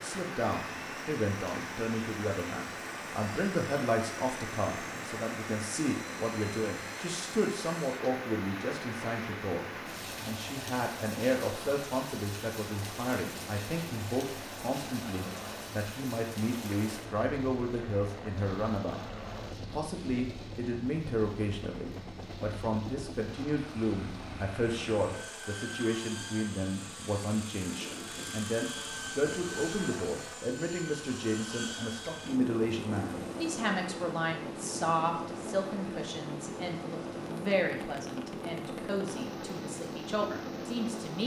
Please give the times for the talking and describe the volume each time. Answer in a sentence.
The talking can be heard from 0.0 to 41.2 s, at a steady volume.